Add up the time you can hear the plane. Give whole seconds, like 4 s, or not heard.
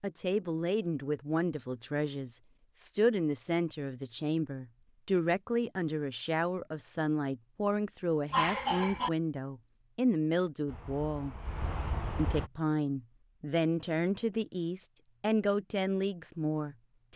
2 s.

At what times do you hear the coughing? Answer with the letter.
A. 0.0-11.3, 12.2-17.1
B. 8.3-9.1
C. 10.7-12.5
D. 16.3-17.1
B.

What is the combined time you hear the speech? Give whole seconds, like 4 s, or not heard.
16 s.